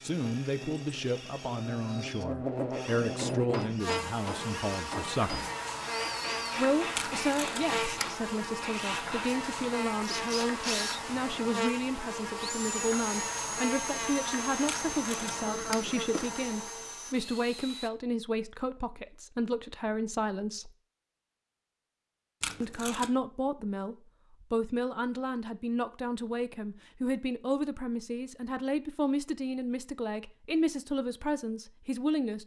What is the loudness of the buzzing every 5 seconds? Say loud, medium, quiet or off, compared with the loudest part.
loud, loud, loud, loud, off, off, off.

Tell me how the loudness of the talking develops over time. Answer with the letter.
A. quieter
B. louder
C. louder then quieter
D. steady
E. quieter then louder
D.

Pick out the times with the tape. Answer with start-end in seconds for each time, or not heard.
7.0-8.2, 14.7-15.8, 22.4-23.1.